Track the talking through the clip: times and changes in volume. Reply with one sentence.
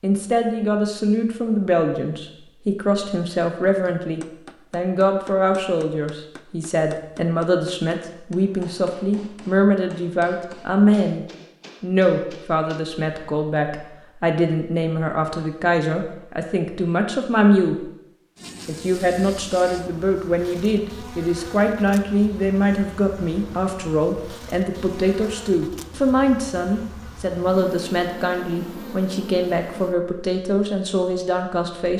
The talking can be heard from 0.0 to 17.9 s, at a steady volume; and from 18.6 to 31.9 s, at a steady volume.